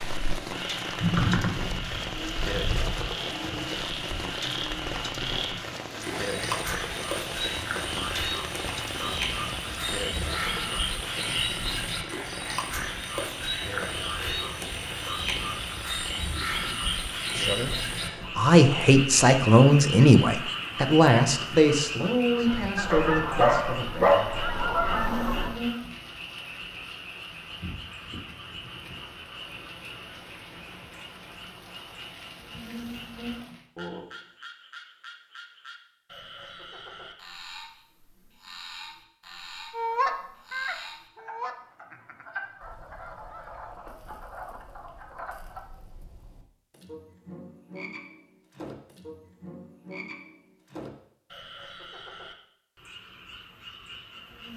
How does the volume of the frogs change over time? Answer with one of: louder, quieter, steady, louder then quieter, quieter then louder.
quieter.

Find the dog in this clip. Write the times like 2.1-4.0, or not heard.
22.9-24.5.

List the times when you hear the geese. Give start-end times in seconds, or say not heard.
22.4-25.6, 39.7-43.4.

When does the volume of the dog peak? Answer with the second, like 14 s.
24 s.